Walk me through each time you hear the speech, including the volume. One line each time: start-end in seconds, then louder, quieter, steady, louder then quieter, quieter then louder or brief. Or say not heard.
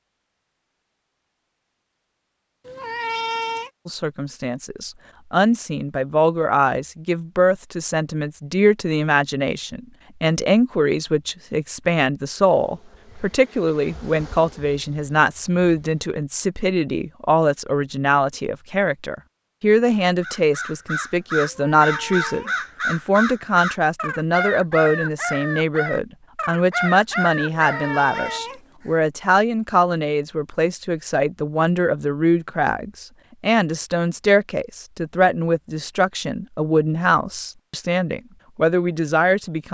3.9-39.6 steady.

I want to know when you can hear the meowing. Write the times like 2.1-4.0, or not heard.
2.6-3.7, 21.4-22.6, 27.5-28.9.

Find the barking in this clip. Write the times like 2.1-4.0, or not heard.
not heard.